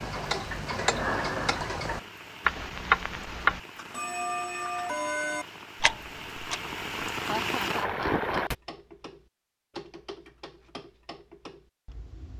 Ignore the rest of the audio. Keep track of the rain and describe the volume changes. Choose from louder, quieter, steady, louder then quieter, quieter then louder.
louder.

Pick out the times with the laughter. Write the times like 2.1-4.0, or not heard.
7.2-8.3.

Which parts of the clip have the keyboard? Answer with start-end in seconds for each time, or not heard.
not heard.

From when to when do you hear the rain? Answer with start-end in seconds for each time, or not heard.
0.0-8.6.